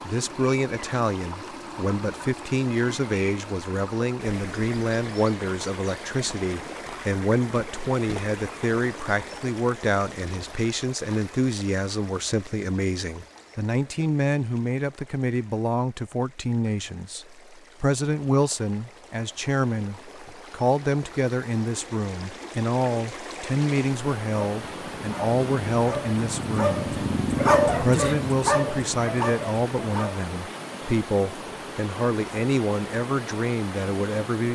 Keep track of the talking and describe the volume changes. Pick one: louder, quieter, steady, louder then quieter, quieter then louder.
steady.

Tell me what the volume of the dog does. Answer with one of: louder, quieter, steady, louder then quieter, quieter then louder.
louder then quieter.